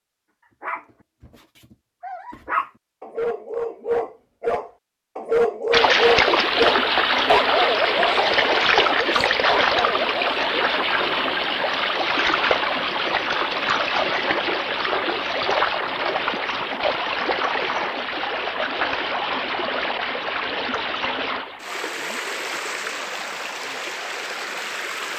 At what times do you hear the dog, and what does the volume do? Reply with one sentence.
You can hear the dog from 0.6 to 10.5 s, getting louder then quieter.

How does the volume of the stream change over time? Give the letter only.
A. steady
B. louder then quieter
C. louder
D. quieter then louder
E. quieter
E.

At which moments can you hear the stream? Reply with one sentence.
The stream can be heard from 5.7 to 25.1 s.